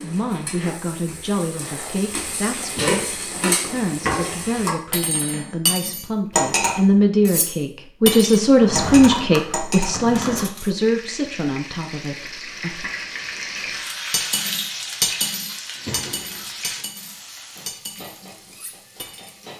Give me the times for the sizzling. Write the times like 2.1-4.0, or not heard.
0.0-4.8, 10.8-19.5.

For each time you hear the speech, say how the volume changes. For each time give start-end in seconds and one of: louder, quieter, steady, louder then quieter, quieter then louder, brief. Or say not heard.
0.0-12.8 louder then quieter.